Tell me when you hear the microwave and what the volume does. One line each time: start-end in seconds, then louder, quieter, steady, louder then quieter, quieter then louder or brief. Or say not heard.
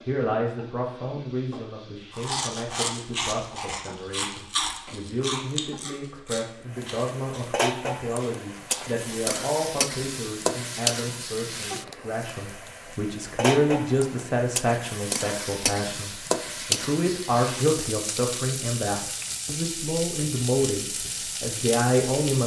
not heard.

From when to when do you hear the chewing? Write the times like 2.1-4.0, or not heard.
2.1-9.3.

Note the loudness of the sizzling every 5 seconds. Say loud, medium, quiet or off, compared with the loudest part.
quiet, loud, loud, loud, loud.